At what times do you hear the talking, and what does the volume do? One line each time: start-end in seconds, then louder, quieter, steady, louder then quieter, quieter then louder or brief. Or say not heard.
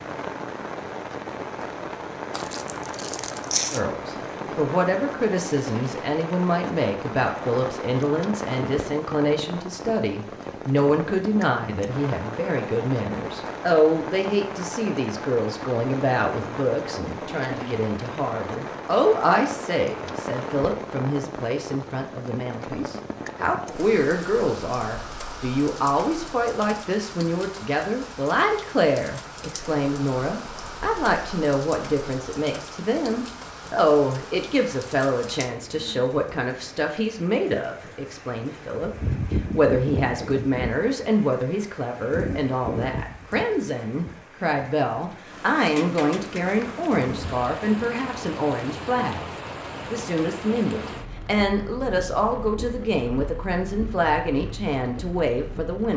3.7-49.3 steady
49.9-55.9 steady.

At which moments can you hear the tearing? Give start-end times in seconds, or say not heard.
2.3-3.8.